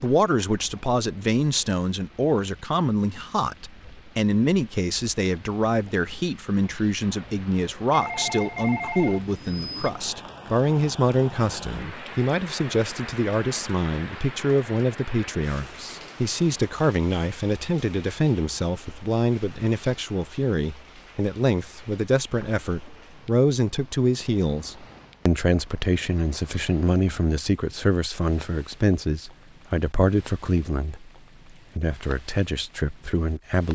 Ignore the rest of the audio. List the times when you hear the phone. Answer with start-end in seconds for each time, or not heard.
7.9-9.9, 22.4-23.1.